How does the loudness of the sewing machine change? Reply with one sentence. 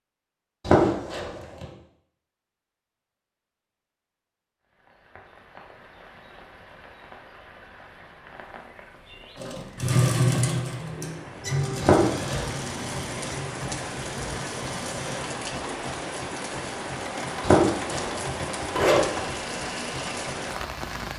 The loudness of the sewing machine goes down.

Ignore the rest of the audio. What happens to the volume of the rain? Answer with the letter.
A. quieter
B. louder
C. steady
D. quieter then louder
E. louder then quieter
B.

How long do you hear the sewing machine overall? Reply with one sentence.
You can hear the sewing machine for 12 seconds altogether.